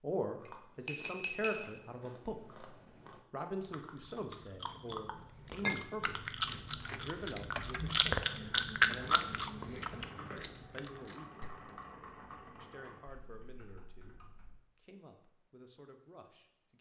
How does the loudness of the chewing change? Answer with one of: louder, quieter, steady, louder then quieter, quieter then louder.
louder.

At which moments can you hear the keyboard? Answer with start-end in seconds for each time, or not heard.
8.9-14.6.